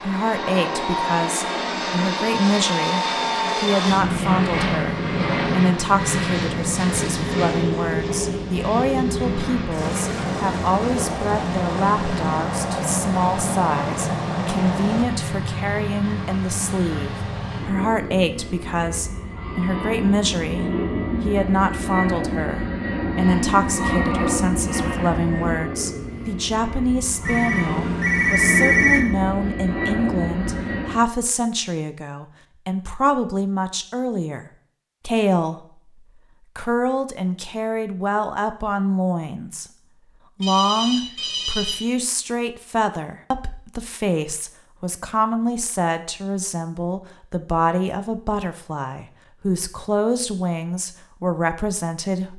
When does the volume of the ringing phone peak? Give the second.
29 s.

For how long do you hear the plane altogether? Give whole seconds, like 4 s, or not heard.
31 s.